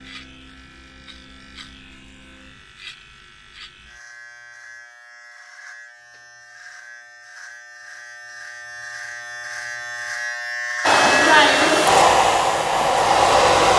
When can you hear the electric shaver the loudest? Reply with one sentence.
The loudest moment of the electric shaver is at 11 seconds.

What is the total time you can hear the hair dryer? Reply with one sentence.
The hair dryer can be heard for 3 seconds in total.